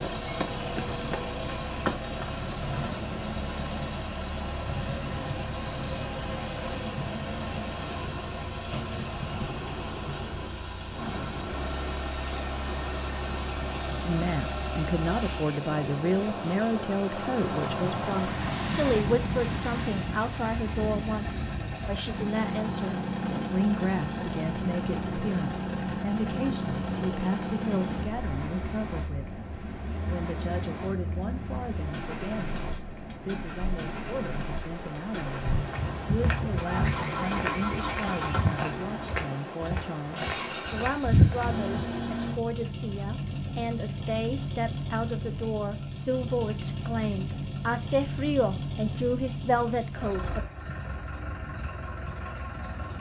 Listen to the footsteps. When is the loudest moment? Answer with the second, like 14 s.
41 s.